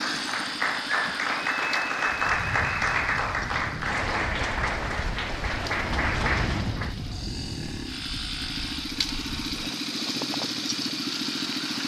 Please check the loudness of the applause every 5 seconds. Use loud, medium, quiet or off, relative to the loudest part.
loud, loud, off.